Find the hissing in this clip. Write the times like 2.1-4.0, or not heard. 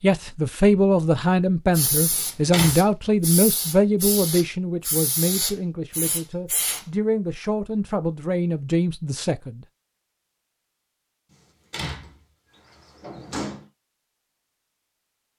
1.7-6.8.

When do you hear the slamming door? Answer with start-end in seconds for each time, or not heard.
2.1-2.8, 11.7-13.7.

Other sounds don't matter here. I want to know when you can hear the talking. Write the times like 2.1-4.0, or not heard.
0.0-9.6.